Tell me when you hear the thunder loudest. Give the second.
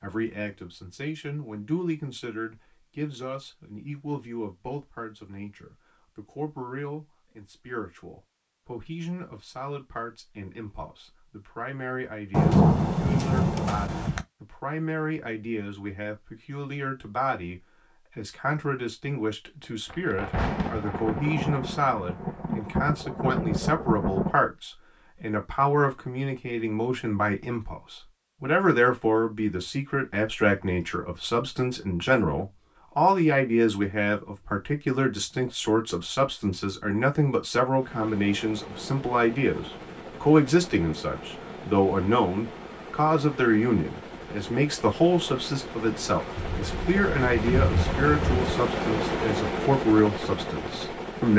13 s.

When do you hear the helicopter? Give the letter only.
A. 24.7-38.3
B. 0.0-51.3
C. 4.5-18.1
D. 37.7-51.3
D.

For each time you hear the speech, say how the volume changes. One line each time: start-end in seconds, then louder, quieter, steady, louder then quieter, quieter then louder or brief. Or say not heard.
0.0-51.3 louder.